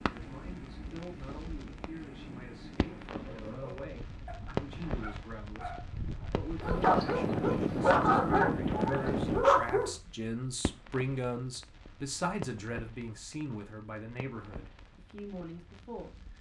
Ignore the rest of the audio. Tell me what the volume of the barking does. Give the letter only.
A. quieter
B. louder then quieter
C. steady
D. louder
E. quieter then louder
D.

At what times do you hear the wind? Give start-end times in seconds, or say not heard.
0.0-9.4.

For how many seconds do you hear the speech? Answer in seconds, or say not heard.
16 s.